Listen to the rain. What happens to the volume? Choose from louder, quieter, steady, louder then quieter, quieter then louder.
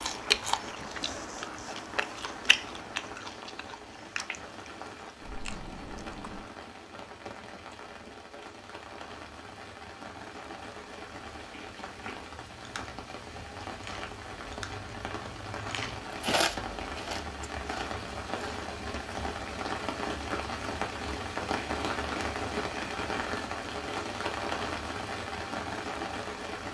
louder.